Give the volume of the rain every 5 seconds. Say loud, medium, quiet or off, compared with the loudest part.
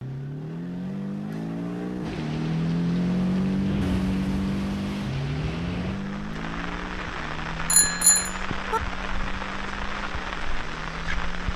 medium, loud, loud.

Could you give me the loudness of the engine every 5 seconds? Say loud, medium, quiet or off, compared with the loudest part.
loud, medium, quiet.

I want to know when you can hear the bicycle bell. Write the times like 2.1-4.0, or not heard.
7.7-8.8.